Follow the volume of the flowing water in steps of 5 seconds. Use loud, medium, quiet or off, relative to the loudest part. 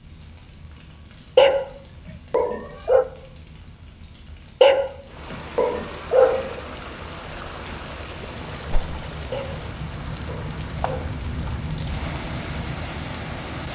off, loud, loud.